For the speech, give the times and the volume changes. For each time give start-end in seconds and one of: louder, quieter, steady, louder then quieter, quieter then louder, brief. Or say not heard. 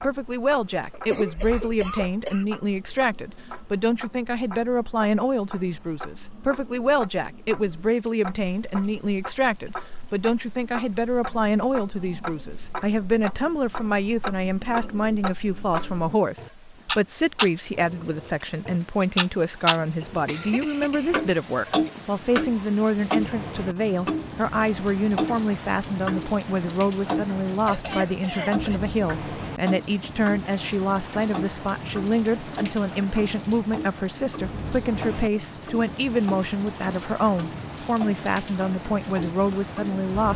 0.0-40.3 steady.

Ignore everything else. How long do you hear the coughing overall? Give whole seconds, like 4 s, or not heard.
4 s.